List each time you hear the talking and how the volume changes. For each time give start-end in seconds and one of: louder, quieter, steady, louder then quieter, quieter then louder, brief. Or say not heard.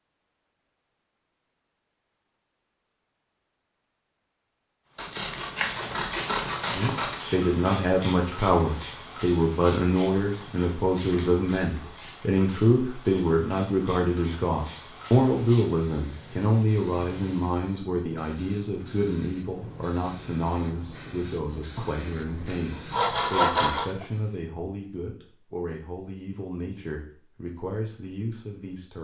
6.8-29.0 quieter.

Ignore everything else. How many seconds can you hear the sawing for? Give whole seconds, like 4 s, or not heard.
4 s.